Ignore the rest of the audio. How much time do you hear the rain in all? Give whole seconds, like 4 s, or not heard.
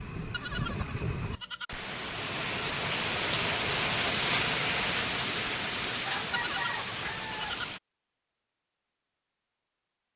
8 s.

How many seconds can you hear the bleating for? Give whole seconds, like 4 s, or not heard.
3 s.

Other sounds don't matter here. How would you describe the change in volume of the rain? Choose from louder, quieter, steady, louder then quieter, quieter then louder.
louder then quieter.